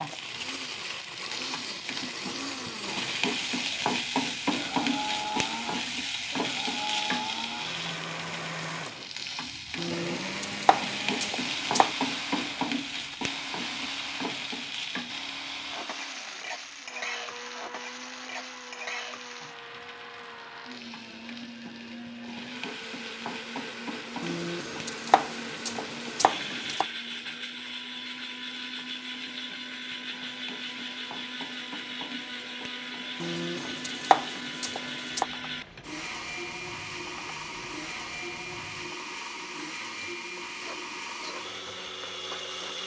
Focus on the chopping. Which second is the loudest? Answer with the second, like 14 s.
34 s.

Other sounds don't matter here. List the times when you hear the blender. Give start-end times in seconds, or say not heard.
0.0-42.8.